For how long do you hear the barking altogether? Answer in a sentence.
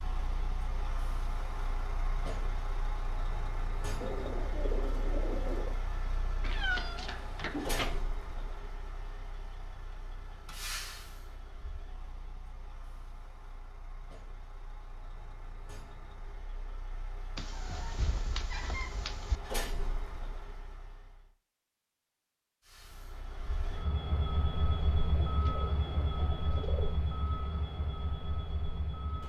You can't hear the barking here.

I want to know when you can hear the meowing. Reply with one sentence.
The meowing can be heard from 6.4 to 8.0 s and from 17.4 to 19.4 s.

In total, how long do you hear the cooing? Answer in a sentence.
The cooing can be heard for 4 seconds in total.